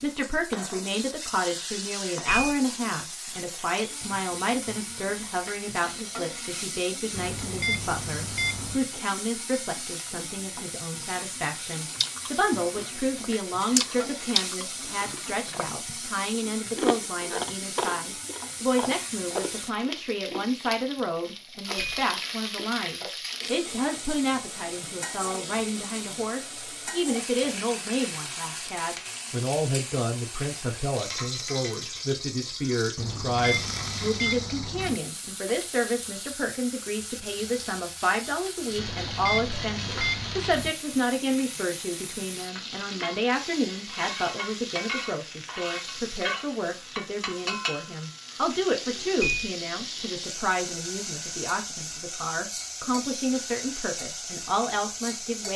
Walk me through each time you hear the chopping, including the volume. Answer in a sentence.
The chopping can't be heard in this clip.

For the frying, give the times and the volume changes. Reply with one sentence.
You can hear the frying from 0.0 to 55.5 s, at a steady volume.